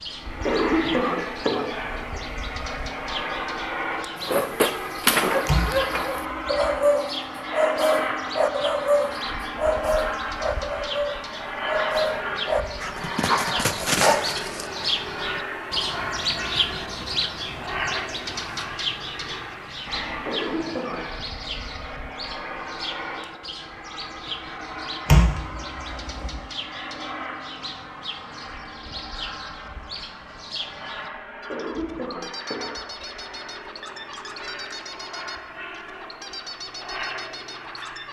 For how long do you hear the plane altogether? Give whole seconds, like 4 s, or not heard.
38 s.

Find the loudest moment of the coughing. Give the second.
1 s.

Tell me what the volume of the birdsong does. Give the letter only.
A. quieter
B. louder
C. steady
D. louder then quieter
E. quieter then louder
D.